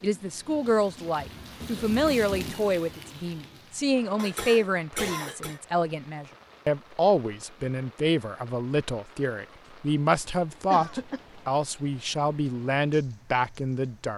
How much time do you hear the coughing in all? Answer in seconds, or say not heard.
2 s.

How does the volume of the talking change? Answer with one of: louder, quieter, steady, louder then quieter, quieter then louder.
steady.